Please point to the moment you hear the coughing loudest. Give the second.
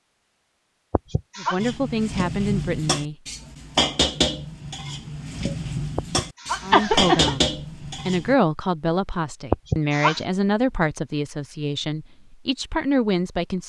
7 s.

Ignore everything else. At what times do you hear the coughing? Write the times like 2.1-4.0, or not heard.
0.9-1.6, 6.0-7.4, 9.5-10.2.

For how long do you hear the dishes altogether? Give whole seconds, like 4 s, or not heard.
7 s.